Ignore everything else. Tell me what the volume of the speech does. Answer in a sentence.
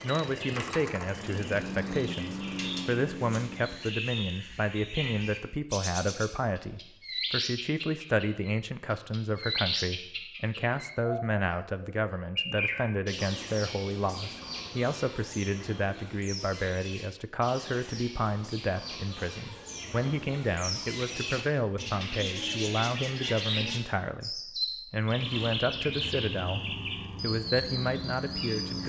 The volume of the speech stays about the same.